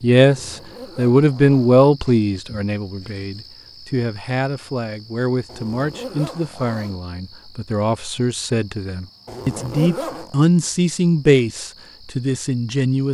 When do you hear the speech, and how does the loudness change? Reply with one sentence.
The speech can be heard from 0.0 to 13.0 s, getting quieter then louder.